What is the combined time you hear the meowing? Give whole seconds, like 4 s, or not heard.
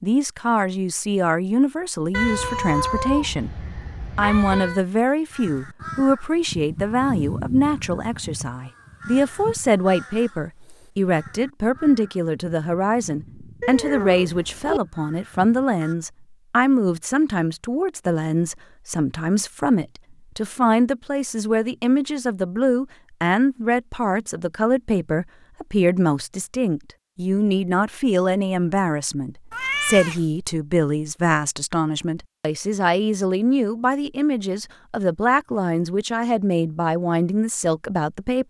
5 s.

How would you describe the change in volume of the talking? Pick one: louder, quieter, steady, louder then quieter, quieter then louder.
steady.